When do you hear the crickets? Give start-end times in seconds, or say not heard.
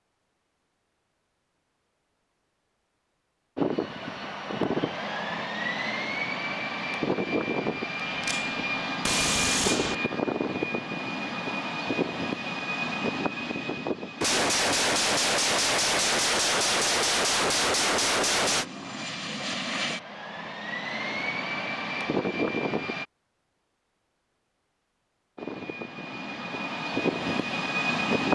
not heard.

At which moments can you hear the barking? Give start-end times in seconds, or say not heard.
not heard.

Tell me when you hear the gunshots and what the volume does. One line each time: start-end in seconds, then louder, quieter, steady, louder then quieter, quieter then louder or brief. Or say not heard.
8.2-9.9 brief
14.2-18.6 steady.